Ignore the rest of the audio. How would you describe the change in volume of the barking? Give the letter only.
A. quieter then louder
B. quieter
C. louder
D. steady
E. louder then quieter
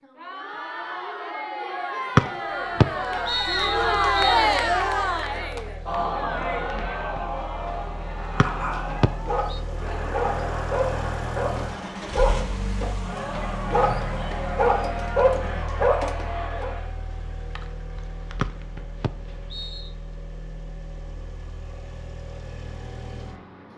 C.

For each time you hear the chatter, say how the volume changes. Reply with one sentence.
The chatter can be heard from 0.0 to 16.9 s, getting louder then quieter.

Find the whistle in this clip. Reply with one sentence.
You can hear the whistle from 2.1 to 4.5 s, from 8.4 to 9.6 s and from 18.4 to 19.9 s.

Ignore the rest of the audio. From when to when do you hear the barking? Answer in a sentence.
You can hear the barking from 8.3 to 16.7 s.